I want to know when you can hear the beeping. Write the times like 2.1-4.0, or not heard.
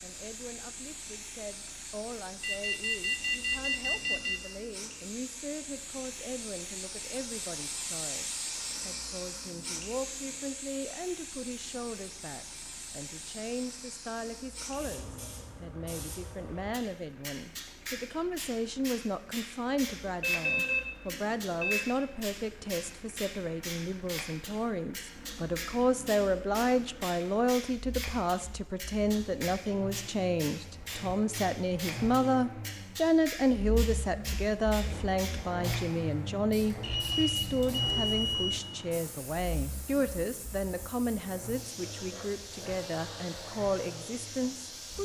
2.4-4.4, 20.2-21.8, 36.8-38.6.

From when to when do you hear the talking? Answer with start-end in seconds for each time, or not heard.
0.0-44.9.